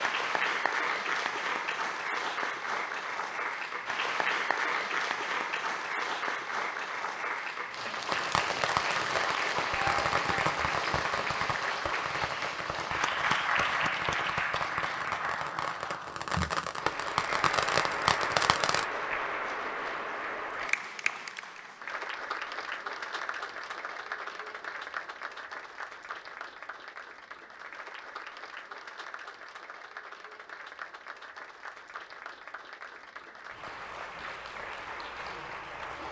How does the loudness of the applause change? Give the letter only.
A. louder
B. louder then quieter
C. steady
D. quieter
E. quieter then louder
D.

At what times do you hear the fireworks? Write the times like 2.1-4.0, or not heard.
8.1-18.9.